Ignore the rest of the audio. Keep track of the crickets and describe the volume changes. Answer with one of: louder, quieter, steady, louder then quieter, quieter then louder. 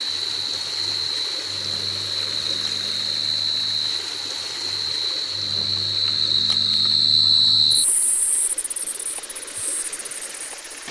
louder then quieter.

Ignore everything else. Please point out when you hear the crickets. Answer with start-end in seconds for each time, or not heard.
0.0-10.8.